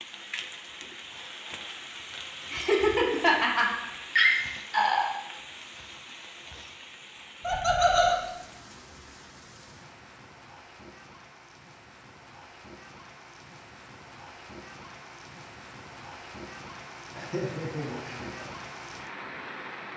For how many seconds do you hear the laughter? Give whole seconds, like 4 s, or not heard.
5 s.